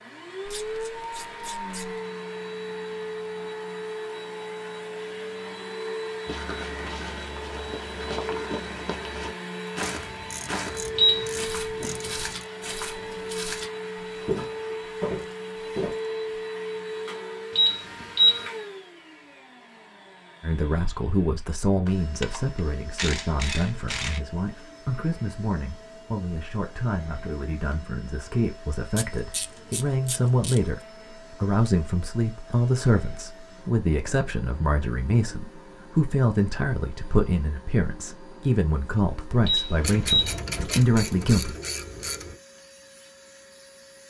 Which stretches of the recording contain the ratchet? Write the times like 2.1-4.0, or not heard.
0.5-2.0, 9.9-12.4, 22.2-24.2, 28.9-30.6, 39.8-42.4.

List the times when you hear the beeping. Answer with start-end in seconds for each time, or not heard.
10.9-11.6, 17.6-18.4, 39.5-40.4.